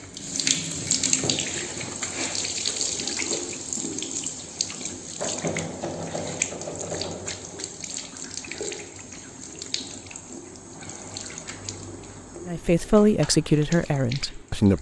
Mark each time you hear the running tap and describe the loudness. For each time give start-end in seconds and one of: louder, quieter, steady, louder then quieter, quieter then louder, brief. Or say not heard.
0.0-14.7 quieter.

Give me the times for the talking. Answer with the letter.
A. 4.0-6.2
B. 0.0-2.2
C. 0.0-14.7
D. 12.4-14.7
D.